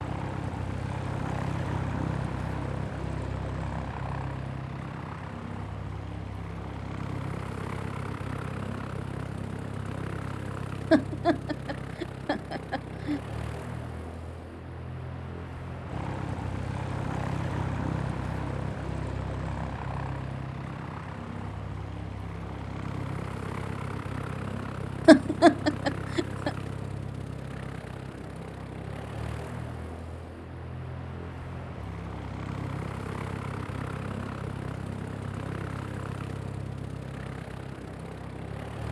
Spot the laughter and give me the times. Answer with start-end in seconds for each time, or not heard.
10.9-13.2, 25.1-26.5.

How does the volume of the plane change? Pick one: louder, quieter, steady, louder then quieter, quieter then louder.
steady.